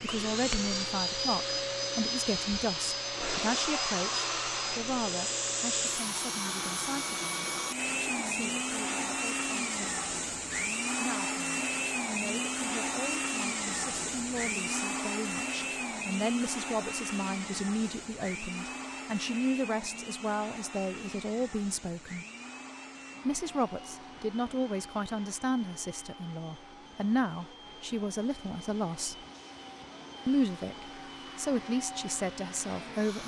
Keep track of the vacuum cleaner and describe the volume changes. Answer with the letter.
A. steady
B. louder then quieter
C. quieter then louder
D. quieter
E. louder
D.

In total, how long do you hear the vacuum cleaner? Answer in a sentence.
The vacuum cleaner can be heard for 33 seconds in total.